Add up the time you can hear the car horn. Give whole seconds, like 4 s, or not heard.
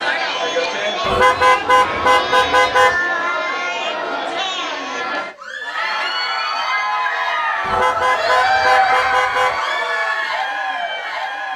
4 s.